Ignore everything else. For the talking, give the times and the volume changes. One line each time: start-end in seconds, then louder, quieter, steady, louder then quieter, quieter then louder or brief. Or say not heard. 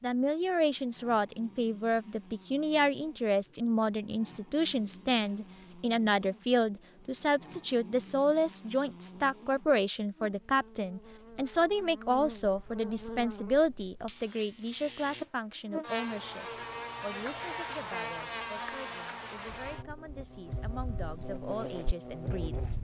0.0-22.8 quieter.